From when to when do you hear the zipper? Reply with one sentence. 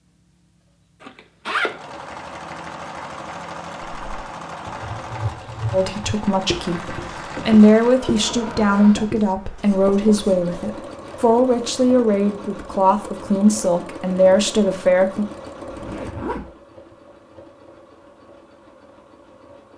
The zipper can be heard from 1.0 to 2.0 s and from 15.7 to 16.9 s.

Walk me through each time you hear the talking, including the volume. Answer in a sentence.
You can hear the talking from 5.7 to 15.2 s, at a steady volume.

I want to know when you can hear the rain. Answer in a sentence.
The rain can't be heard in this clip.